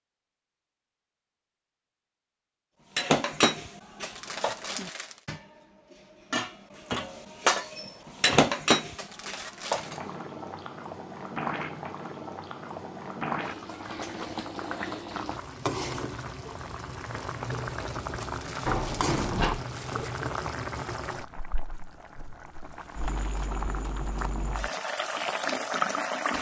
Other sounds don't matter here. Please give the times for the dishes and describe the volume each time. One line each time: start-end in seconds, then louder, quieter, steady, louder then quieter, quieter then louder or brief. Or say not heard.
3.0-10.2 quieter then louder.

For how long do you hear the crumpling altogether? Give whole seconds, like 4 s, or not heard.
4 s.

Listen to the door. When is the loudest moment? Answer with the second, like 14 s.
19 s.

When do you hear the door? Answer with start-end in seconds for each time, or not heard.
6.9-8.6, 18.6-19.6.